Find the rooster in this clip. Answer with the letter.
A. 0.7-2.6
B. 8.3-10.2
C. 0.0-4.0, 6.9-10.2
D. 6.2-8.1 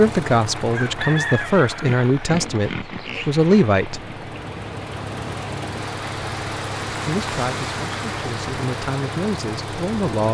A.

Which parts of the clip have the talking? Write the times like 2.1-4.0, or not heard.
0.0-4.0, 6.9-10.2.